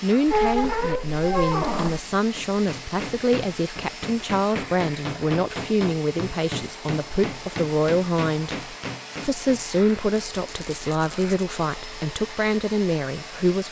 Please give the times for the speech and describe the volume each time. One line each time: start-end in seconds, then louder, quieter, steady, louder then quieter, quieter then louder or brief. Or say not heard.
0.0-13.6 steady.